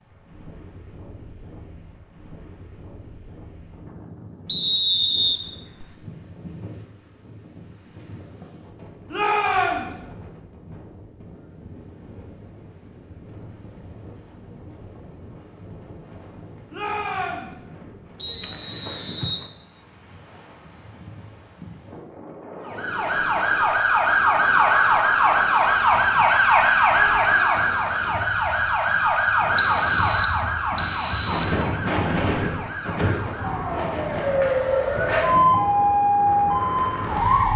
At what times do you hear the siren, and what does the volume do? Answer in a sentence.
You can hear the siren from 22.6 to 37.5 s, getting quieter then louder.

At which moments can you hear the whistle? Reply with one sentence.
You can hear the whistle from 4.5 to 5.8 s, from 18.2 to 19.4 s and from 29.6 to 31.4 s.